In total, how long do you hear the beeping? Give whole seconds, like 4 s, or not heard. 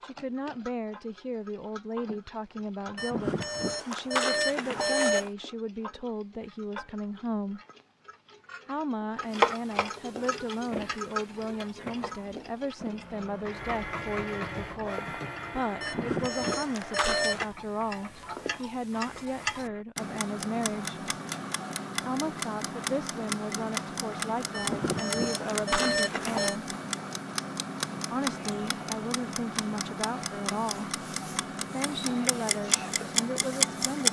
6 s.